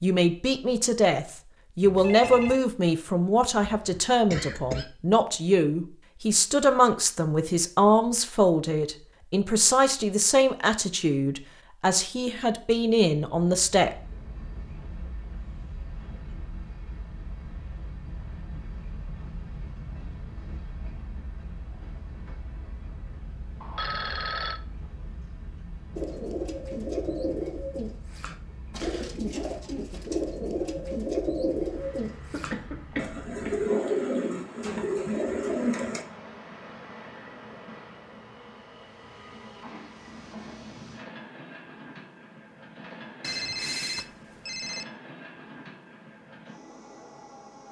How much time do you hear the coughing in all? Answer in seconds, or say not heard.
3 s.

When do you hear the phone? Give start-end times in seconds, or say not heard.
1.8-2.6, 23.6-24.6, 43.2-44.9.